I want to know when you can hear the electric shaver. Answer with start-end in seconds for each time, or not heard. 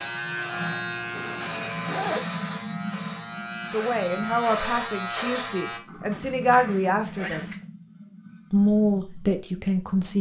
0.0-5.8.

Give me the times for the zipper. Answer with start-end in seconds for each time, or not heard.
1.1-2.2, 6.1-7.7.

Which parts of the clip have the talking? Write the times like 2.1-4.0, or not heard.
3.7-7.5, 8.5-10.1.